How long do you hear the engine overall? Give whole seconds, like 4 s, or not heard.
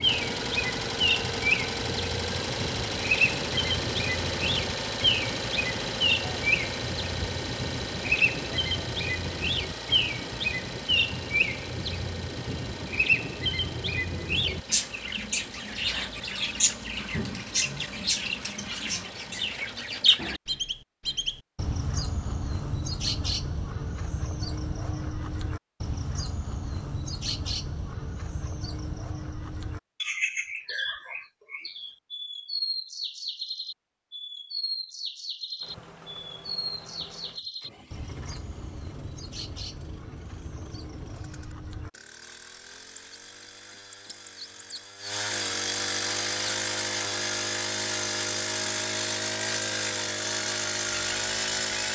37 s.